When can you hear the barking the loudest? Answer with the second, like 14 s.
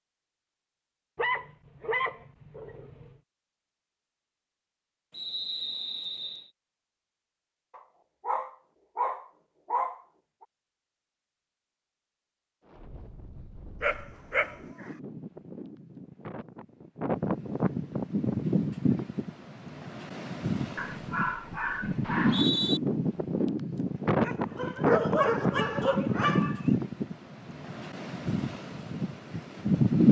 25 s.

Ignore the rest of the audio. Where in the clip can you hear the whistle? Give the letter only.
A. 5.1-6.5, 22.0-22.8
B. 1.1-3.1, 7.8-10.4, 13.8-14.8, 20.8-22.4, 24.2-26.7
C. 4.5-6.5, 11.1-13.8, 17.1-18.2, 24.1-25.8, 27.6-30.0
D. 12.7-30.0
A.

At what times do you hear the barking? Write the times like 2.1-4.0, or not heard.
1.1-3.1, 7.8-10.4, 13.8-14.8, 20.8-22.4, 24.2-26.7.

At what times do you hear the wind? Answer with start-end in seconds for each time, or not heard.
12.7-30.0.